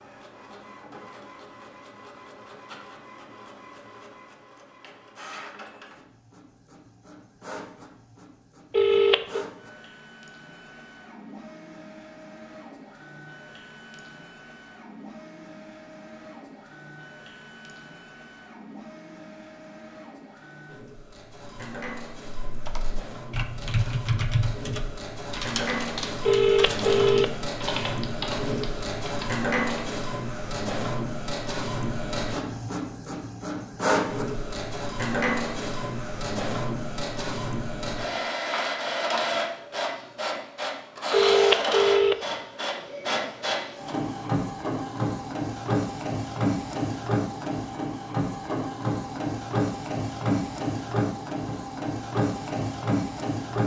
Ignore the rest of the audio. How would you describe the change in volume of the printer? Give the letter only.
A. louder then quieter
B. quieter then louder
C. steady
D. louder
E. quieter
D.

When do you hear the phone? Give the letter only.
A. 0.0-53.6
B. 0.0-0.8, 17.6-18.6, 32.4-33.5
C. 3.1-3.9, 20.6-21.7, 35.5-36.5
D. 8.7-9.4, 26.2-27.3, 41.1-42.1
D.